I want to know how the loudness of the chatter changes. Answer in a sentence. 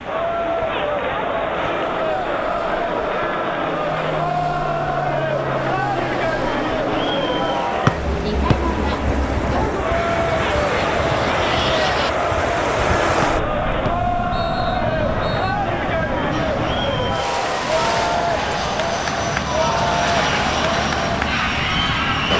The volume of the chatter stays about the same.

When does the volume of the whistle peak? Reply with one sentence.
The volume of the whistle peaks at 8 seconds.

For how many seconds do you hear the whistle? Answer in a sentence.
You can hear the whistle for 3 seconds altogether.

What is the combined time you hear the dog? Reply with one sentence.
The dog can't be heard in this clip.